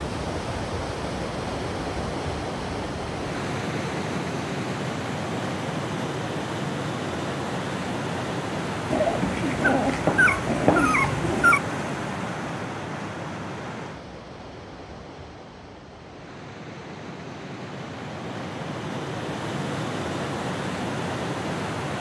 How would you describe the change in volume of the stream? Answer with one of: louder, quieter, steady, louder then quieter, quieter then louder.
quieter then louder.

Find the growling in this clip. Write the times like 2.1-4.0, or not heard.
8.9-11.6.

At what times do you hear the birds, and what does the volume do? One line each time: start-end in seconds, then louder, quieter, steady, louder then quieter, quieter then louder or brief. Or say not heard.
not heard.